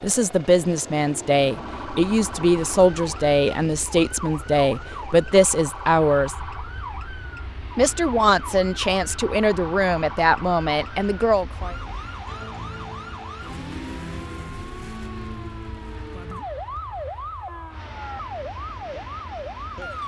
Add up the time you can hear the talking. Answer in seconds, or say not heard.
10 s.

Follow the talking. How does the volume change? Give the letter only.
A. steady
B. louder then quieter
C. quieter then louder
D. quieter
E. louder
A.